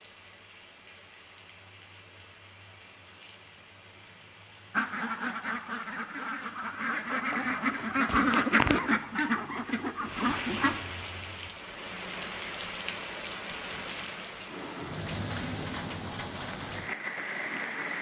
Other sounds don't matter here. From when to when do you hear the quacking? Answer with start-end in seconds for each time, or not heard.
4.7-10.8.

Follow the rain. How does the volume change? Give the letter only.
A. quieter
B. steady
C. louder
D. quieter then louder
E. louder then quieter
C.